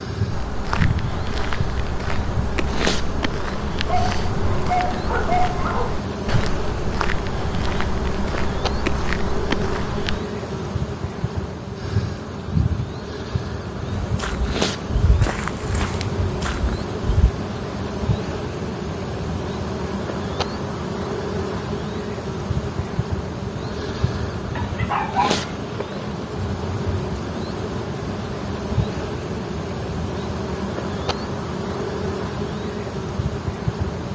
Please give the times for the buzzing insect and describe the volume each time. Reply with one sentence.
You can hear the buzzing insect from 0.0 to 34.1 s, at a steady volume.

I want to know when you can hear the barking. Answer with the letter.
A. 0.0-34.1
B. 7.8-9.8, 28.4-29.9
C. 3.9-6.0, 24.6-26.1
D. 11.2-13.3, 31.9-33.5
C.